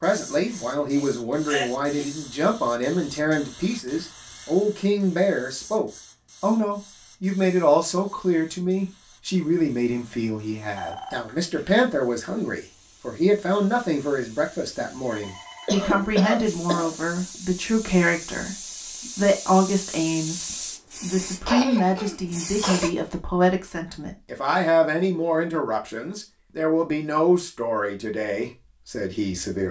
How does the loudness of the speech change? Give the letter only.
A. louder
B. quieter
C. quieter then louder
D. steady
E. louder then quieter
D.